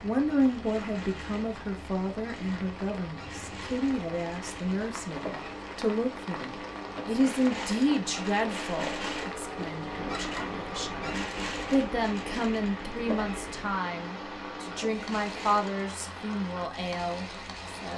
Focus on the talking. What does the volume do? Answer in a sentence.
The volume of the talking stays about the same.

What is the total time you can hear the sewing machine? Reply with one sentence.
You can hear the sewing machine for 18 seconds altogether.